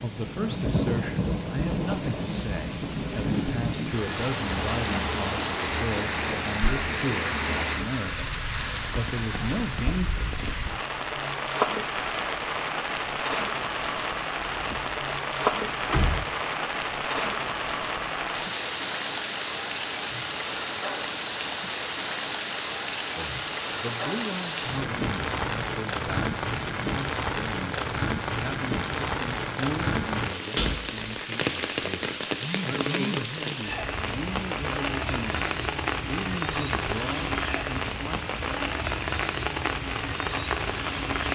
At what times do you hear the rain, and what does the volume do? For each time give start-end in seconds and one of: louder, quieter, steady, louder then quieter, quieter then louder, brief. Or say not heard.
0.0-41.2 steady.